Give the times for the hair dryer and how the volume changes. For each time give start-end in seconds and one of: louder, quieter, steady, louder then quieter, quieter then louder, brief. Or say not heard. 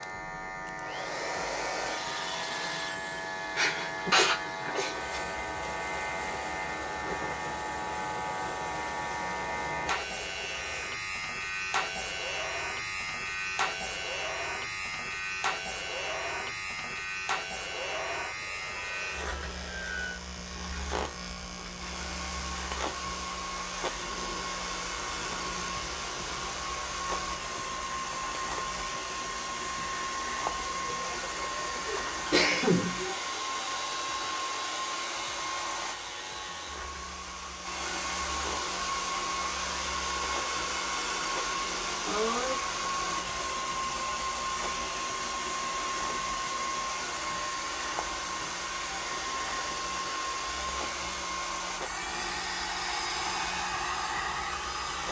0.0-55.0 louder.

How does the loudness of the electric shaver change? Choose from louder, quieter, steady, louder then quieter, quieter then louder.
quieter.